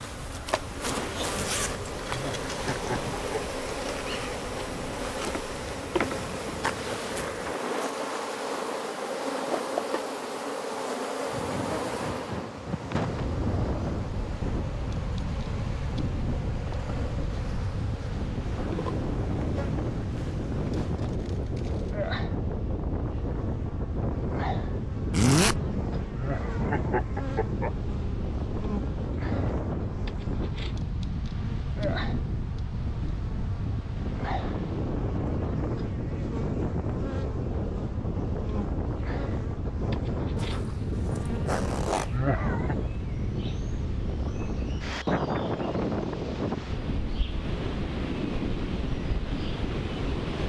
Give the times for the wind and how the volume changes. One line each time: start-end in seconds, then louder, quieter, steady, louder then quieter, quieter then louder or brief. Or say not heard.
0.0-50.4 louder.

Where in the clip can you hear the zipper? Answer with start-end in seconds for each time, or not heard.
1.4-3.1, 25.1-25.6, 40.4-42.1.